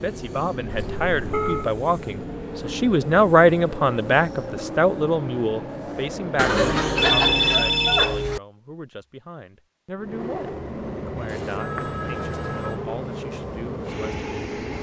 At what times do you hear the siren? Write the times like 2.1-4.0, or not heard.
not heard.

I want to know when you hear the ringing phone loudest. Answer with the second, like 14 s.
7 s.